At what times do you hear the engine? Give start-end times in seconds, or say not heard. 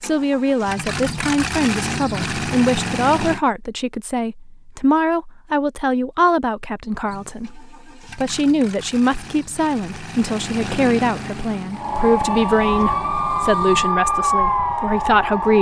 0.0-3.4, 7.0-13.9.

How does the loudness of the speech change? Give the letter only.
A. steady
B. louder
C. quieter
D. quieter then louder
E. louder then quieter
A.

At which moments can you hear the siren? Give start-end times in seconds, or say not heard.
11.7-15.5.